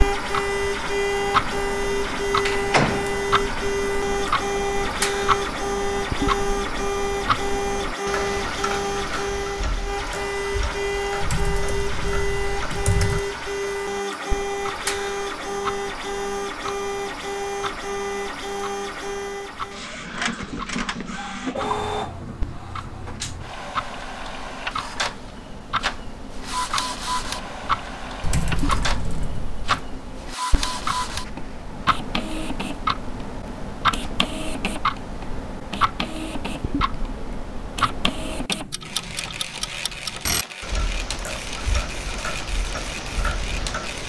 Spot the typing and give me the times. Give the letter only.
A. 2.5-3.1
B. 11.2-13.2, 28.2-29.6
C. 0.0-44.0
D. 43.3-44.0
B.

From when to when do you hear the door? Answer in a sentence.
The door can be heard from 2.5 to 3.1 s.